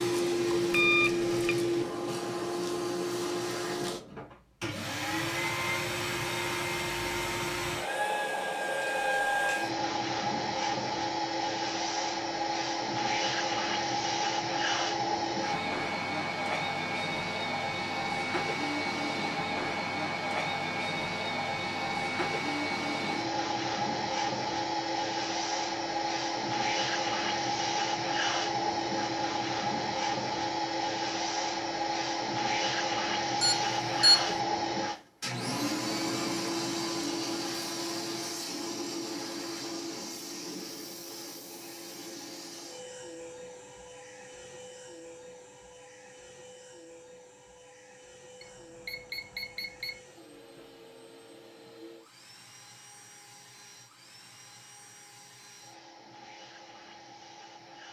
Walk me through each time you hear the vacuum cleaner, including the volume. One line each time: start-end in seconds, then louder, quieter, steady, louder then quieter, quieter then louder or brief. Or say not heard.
0.0-57.8 quieter.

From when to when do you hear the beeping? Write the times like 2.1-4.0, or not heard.
0.7-1.6, 33.4-34.4, 48.4-50.0.